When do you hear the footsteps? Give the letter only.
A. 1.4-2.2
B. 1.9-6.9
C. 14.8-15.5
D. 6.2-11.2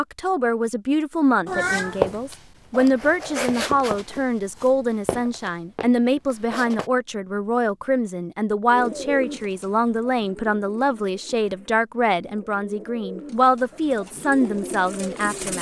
B.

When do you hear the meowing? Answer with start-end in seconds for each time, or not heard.
1.4-2.2.